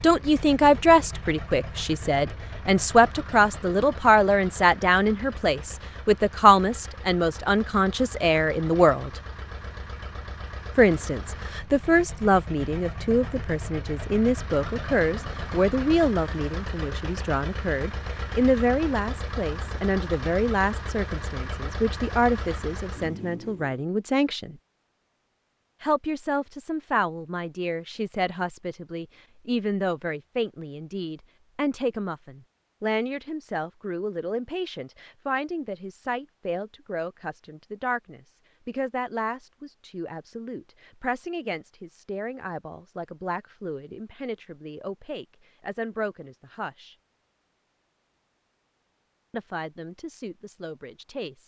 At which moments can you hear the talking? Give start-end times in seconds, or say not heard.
0.0-9.2, 10.8-24.6, 25.8-47.0, 49.3-51.4.